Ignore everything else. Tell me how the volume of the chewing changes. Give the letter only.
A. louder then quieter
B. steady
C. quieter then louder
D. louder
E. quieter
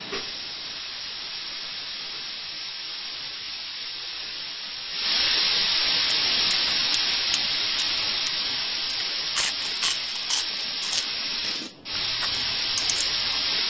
A.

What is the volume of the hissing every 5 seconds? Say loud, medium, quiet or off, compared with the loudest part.
medium, loud, loud.